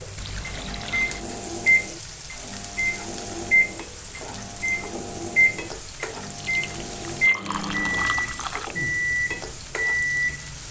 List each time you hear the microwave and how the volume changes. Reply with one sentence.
You can hear the microwave from 0.0 to 10.5 s, at a steady volume.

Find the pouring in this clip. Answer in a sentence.
You can hear the pouring from 0.1 to 1.2 s and from 6.4 to 8.8 s.